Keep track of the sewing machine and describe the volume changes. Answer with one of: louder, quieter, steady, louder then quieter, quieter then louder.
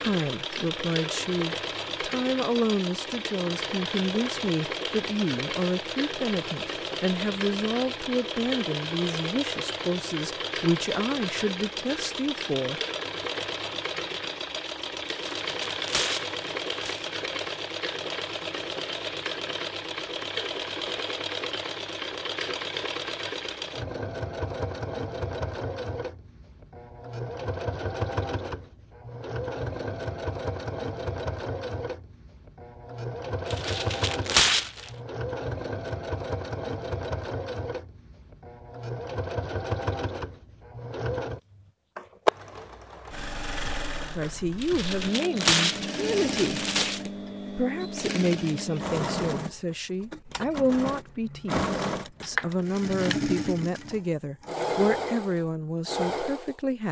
steady.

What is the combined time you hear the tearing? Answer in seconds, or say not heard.
6 s.